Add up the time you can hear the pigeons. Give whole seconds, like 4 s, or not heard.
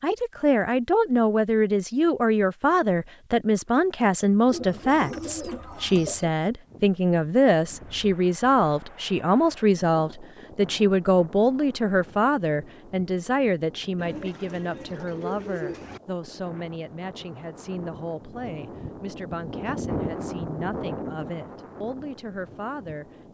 4 s.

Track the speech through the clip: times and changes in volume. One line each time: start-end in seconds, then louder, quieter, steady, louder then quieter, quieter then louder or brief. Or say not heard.
0.0-23.3 quieter.